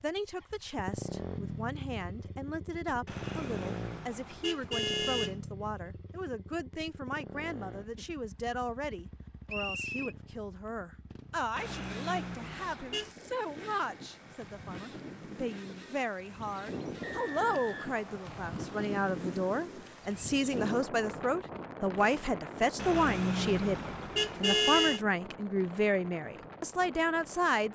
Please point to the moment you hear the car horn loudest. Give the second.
25 s.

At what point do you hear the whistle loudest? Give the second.
10 s.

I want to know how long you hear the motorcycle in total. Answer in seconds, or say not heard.
17 s.